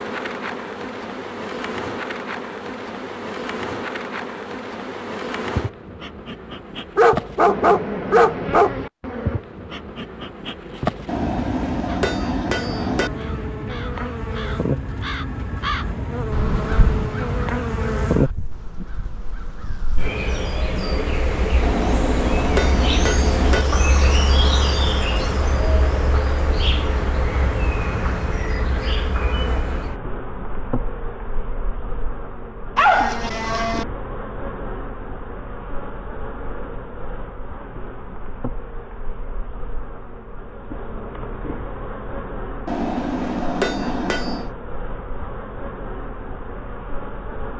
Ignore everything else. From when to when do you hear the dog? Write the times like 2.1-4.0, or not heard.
7.0-8.8, 32.8-33.9.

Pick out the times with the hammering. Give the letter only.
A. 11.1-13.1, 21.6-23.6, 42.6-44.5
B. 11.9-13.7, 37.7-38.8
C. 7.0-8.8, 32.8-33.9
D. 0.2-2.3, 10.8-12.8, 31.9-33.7
A.